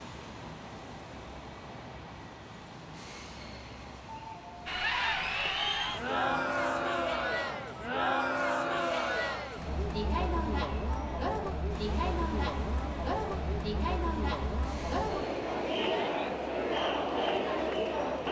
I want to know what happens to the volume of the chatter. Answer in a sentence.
The loudness of the chatter stays about the same.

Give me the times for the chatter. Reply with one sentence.
You can hear the chatter from 4.7 to 18.2 s.